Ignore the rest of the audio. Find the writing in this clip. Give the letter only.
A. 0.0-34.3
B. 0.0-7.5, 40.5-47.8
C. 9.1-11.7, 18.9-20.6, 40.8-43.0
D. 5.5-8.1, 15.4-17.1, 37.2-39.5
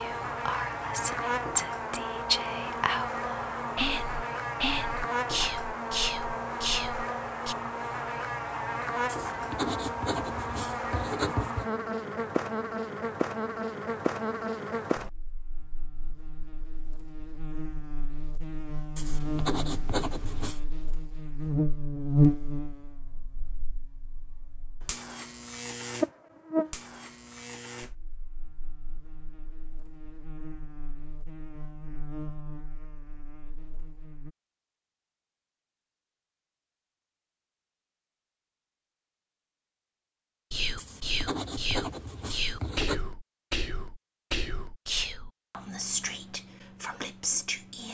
C.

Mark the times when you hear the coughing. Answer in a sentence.
The coughing can't be heard in this clip.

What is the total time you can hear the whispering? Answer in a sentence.
You can hear the whispering for 15 seconds altogether.